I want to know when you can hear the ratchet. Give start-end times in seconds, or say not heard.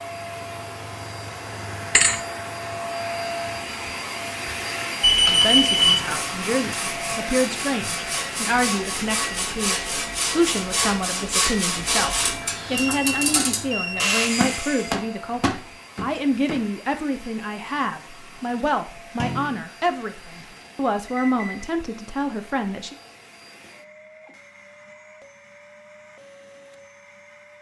not heard.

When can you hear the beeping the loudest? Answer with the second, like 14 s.
5 s.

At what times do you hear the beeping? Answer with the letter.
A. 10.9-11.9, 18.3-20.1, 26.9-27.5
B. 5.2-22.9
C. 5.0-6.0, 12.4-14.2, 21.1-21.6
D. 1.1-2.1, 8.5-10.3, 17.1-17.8
C.